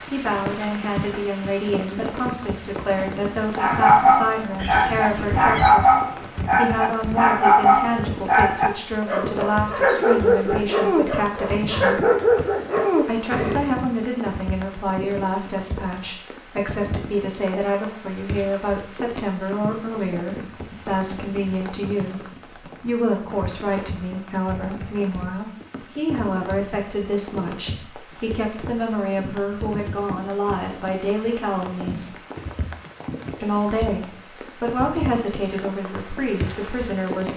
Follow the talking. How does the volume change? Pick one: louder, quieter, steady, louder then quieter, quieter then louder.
steady.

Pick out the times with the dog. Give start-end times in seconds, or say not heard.
3.5-13.7.